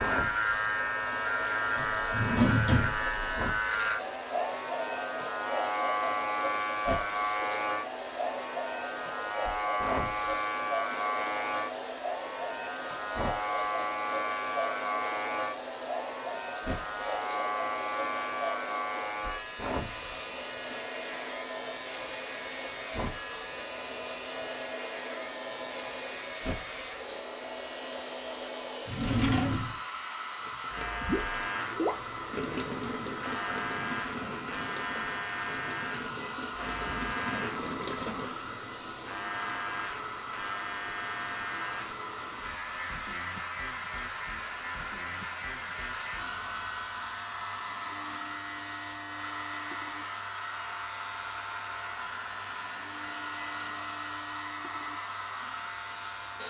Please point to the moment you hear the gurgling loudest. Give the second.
32 s.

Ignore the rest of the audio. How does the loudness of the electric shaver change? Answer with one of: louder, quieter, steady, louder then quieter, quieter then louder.
quieter.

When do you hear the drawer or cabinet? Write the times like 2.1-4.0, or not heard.
1.8-3.2, 28.9-29.8.